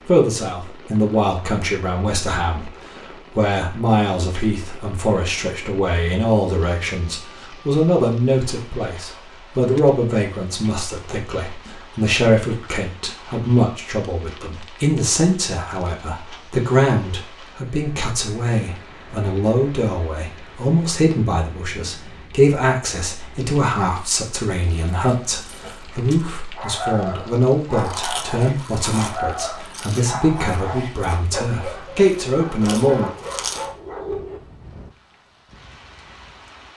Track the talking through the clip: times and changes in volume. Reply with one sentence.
The talking can be heard briefly from 0.1 to 2.8 s; and from 3.4 to 33.1 s, at a steady volume.